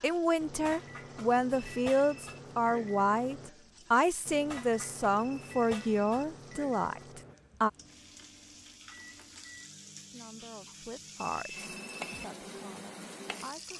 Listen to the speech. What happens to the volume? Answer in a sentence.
The volume of the speech goes down.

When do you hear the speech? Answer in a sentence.
The speech can be heard from 0.0 to 7.7 s and from 9.9 to 13.7 s.